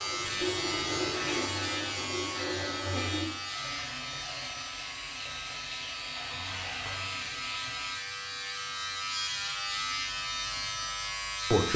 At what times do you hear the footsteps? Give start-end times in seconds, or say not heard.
not heard.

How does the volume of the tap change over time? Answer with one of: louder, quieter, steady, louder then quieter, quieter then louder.
quieter.